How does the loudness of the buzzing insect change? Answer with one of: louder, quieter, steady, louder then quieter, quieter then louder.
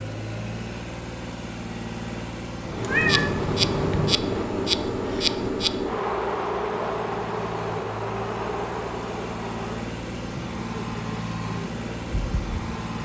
quieter.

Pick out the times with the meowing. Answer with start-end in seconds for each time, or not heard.
2.6-4.2.